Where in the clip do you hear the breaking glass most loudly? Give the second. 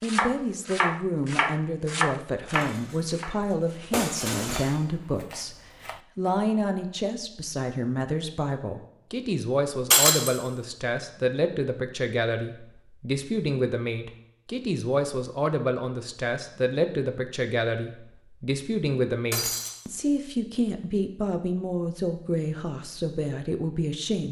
10 s.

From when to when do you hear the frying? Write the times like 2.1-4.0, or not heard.
not heard.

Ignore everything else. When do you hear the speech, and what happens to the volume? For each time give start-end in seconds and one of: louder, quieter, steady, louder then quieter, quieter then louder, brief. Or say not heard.
0.0-24.2 steady.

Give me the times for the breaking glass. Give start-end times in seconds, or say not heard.
2.5-3.0, 3.9-4.8, 9.9-10.3, 19.3-19.8.